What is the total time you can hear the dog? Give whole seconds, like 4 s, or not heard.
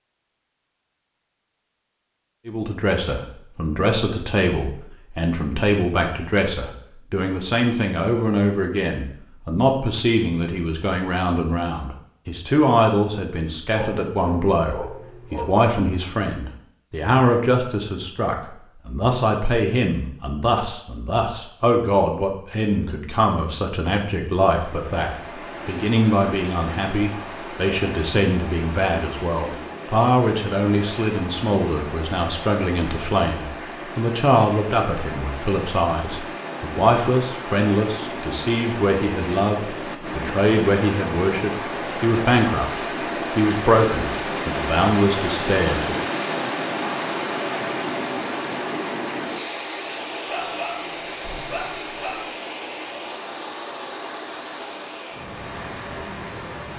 4 s.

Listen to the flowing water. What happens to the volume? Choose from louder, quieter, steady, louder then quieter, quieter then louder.
louder then quieter.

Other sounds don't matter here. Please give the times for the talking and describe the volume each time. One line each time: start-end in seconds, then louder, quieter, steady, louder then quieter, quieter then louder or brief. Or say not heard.
2.5-46.0 steady.